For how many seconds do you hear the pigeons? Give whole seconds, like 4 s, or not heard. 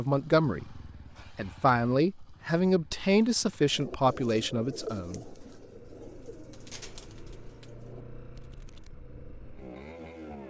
5 s.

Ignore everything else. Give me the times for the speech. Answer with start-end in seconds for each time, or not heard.
0.0-5.3.